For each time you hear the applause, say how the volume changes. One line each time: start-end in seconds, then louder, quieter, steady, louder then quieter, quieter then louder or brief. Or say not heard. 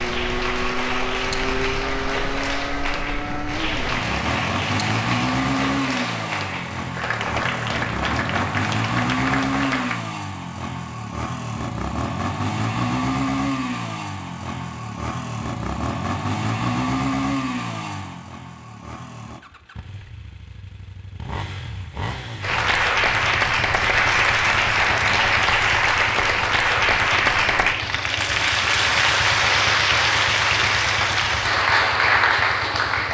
0.0-10.0 steady
22.4-33.0 steady.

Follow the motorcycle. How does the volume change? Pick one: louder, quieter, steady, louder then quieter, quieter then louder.
quieter.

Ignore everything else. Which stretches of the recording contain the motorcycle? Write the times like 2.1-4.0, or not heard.
0.0-33.0.